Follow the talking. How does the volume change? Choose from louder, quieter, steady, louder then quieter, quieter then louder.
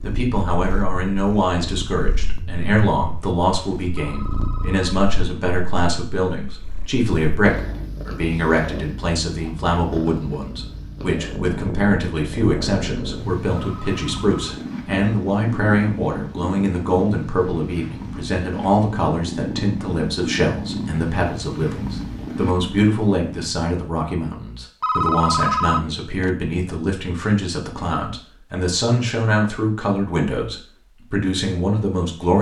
steady.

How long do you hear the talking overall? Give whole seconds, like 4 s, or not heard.
32 s.